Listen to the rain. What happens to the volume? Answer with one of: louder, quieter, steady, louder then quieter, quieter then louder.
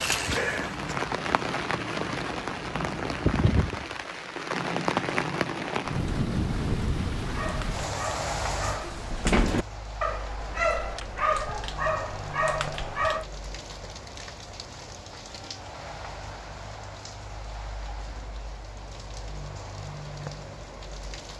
quieter.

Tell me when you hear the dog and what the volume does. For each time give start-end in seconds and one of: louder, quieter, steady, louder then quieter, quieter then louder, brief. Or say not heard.
7.2-13.2 louder.